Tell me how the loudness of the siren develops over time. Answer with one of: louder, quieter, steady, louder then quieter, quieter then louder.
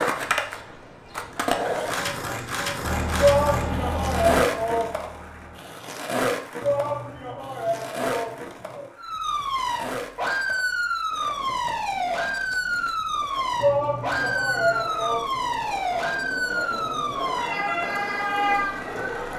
steady.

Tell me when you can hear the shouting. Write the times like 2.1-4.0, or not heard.
3.1-4.9, 6.6-8.9, 13.6-15.2.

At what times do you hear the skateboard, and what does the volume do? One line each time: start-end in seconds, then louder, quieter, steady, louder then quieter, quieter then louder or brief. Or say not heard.
0.0-19.3 quieter then louder.